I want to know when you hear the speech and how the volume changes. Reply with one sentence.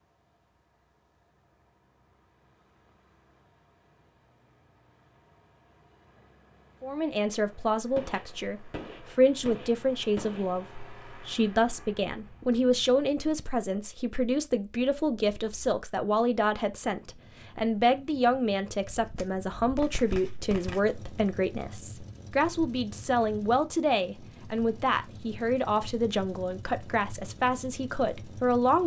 The speech can be heard from 6.8 to 28.8 s, at a steady volume.